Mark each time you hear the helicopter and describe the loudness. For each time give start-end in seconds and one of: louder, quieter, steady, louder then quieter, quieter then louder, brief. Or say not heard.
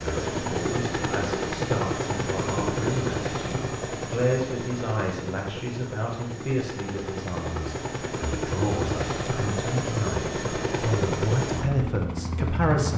0.0-12.9 quieter then louder.